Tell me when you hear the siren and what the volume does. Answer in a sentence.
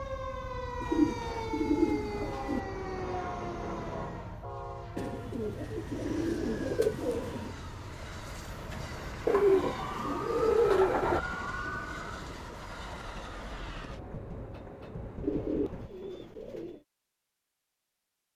You can hear the siren from 0.0 to 4.5 s, at a steady volume; and briefly from 9.3 to 12.2 s.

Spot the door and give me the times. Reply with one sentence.
You can hear the door from 8.4 to 9.1 s.